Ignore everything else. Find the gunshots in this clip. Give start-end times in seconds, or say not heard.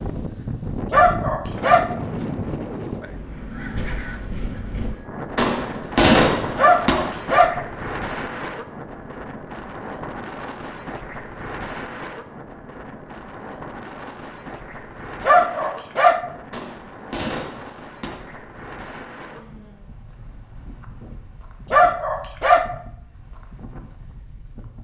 5.3-7.0, 16.5-18.1.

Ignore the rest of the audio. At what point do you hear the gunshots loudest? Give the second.
6 s.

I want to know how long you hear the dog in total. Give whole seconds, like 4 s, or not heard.
4 s.